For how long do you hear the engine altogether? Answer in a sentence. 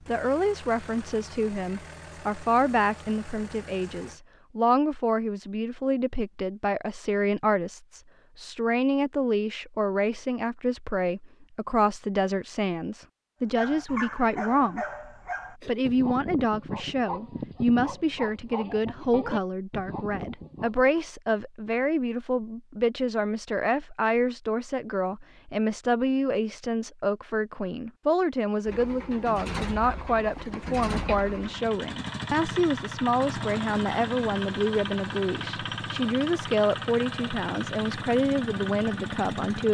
You can hear the engine for 15 seconds altogether.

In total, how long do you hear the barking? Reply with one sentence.
You can hear the barking for 7 seconds altogether.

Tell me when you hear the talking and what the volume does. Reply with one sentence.
You can hear the talking from 0.1 to 14.8 s, at a steady volume; and from 15.7 to 39.6 s, at a steady volume.